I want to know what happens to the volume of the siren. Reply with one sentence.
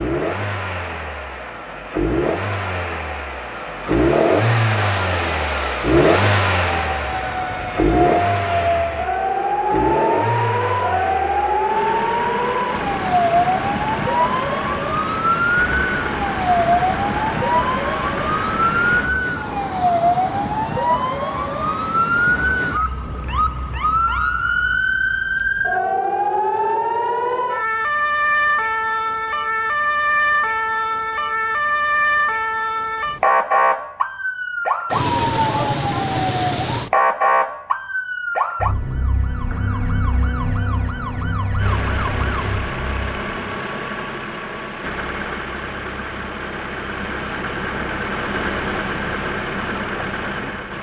The volume of the siren stays about the same.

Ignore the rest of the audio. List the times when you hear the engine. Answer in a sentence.
You can hear the engine from 0.0 to 19.1 s and from 41.5 to 50.7 s.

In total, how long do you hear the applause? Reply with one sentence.
You can't hear the applause here.